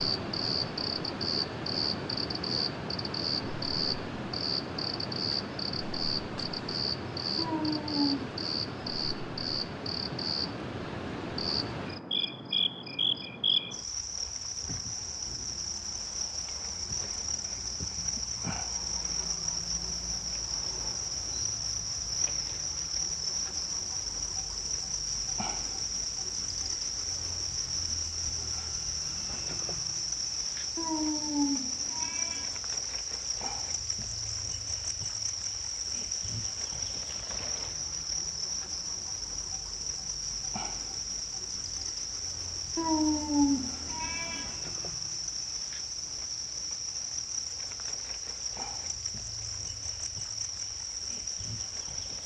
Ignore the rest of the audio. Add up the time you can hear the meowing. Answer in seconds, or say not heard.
4 s.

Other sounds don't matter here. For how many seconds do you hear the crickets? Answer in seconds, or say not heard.
52 s.